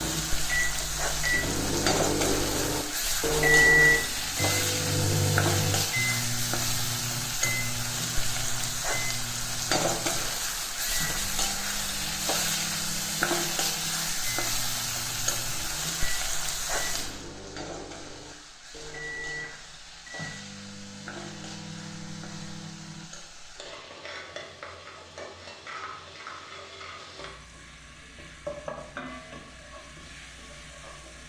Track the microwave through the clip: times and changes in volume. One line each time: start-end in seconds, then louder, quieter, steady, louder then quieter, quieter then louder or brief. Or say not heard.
0.0-23.1 quieter.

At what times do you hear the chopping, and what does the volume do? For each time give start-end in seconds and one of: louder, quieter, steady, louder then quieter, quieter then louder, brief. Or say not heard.
not heard.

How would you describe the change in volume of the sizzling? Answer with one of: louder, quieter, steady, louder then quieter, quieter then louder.
quieter.